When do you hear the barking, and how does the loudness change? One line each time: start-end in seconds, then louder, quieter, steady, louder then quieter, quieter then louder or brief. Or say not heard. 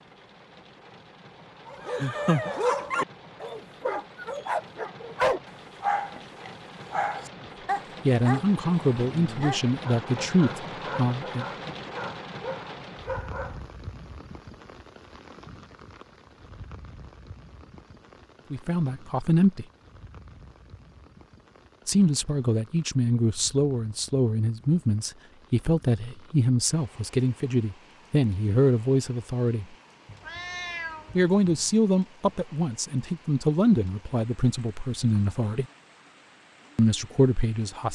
1.6-13.6 quieter.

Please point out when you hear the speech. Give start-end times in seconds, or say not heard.
8.1-11.8, 18.5-19.6, 21.9-29.6, 31.1-35.6, 36.8-37.9.